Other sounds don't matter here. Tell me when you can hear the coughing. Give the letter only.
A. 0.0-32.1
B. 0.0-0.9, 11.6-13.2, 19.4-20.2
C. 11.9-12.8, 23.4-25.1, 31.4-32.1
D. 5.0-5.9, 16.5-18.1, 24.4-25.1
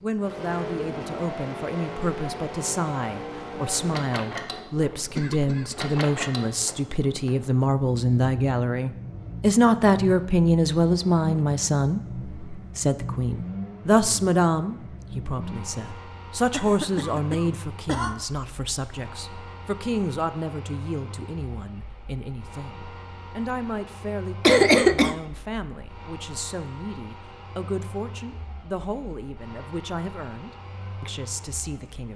D.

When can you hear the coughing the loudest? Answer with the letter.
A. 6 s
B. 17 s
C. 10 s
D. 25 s
D.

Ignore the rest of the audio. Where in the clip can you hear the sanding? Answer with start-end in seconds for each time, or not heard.
not heard.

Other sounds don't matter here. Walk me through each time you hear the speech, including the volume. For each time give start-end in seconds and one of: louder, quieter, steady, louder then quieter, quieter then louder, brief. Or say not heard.
0.0-32.1 louder then quieter.